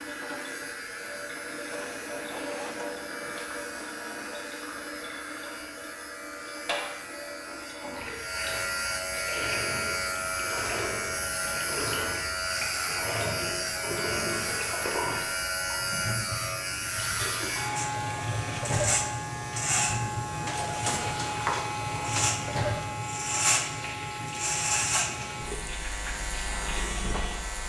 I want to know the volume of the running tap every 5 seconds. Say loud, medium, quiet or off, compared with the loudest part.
loud, loud, loud, loud, loud, medium.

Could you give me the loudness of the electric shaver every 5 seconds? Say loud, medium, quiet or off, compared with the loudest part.
quiet, medium, loud, loud, loud, medium.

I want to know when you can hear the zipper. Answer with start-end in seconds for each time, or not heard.
1.8-3.4, 20.3-21.2.